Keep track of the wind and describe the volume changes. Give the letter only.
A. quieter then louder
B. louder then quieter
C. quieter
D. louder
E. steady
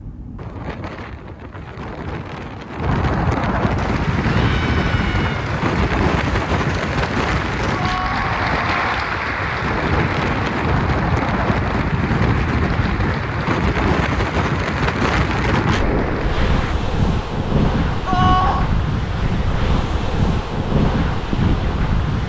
E.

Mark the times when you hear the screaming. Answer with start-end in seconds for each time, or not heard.
4.2-5.5, 7.7-8.8, 18.1-18.7.